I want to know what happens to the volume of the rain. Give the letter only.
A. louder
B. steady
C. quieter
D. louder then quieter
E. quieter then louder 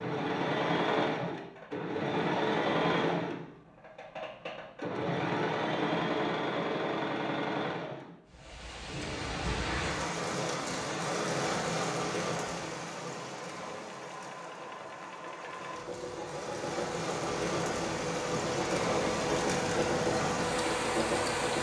E.